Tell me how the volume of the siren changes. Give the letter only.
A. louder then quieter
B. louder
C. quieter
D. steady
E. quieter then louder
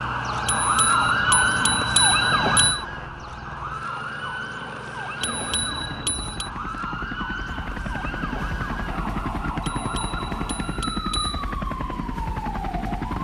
C.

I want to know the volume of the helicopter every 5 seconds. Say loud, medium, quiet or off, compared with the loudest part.
medium, loud, loud.